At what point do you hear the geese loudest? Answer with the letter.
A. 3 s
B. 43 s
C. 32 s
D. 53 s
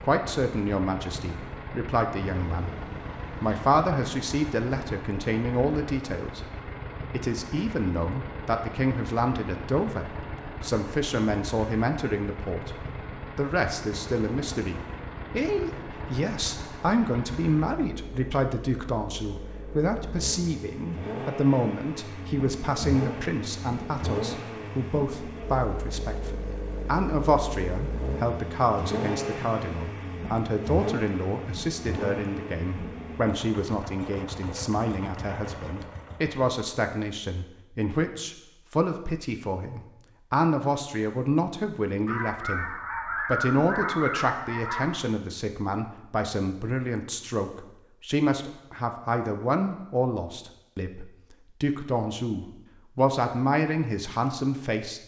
B.